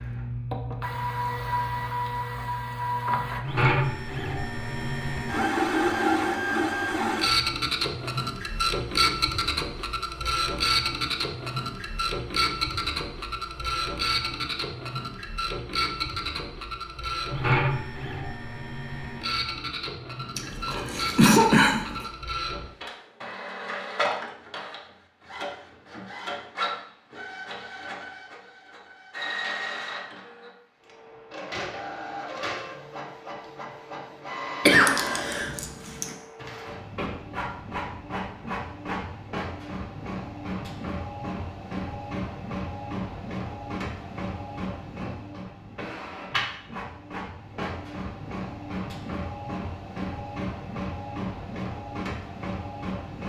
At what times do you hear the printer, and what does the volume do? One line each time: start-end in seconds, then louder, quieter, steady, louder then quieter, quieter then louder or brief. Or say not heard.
0.0-53.2 quieter.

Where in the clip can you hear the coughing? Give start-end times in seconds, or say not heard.
20.4-22.1, 34.6-36.0.